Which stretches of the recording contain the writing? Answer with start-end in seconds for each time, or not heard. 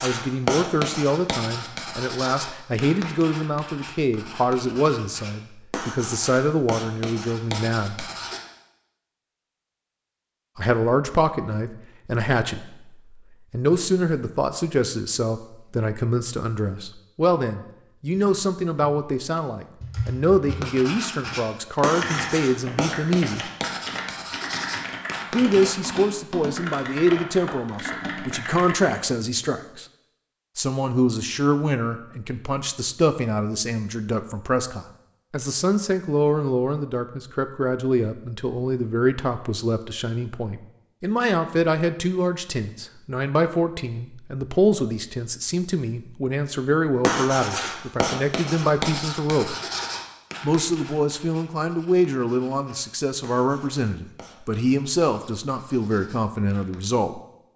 0.0-8.4, 20.4-26.1, 47.0-56.8.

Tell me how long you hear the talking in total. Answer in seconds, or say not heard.
51 s.